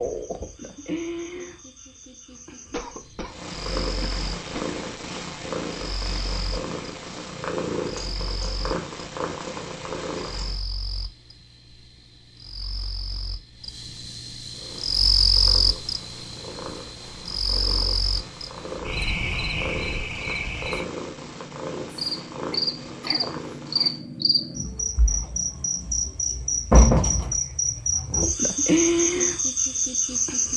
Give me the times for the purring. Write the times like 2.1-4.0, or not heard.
3.2-10.6, 14.5-26.1.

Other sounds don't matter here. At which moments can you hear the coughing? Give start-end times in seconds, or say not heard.
2.7-4.7, 22.5-23.9.